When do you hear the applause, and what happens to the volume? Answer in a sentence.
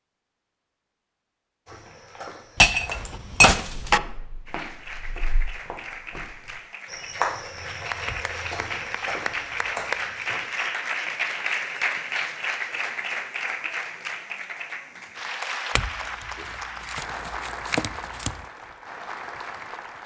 The applause can be heard from 4.5 to 20.0 s, getting louder then quieter.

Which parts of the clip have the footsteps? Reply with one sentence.
The footsteps can be heard from 1.6 to 10.7 s.